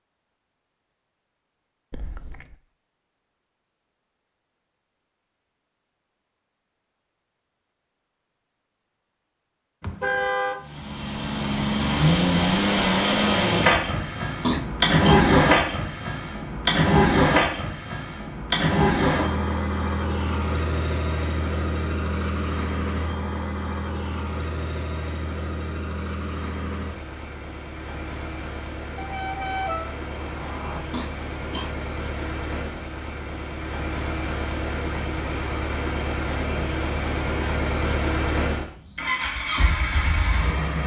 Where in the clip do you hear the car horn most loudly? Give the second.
10 s.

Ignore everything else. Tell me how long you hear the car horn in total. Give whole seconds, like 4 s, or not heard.
3 s.